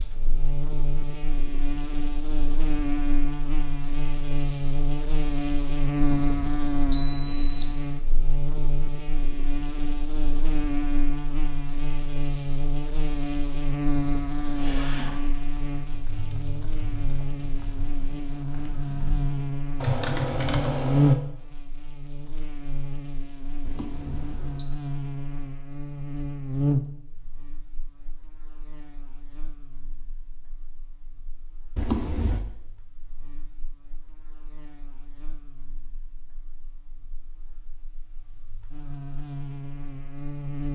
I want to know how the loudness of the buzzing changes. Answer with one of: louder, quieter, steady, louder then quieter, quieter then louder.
quieter.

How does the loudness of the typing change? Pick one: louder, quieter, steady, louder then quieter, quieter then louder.
quieter then louder.